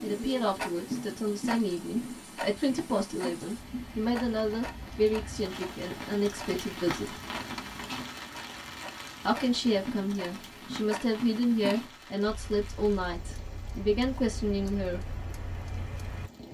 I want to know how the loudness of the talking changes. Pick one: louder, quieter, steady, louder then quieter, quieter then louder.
steady.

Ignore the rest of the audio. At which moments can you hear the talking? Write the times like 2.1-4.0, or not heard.
0.0-7.2, 9.2-15.0.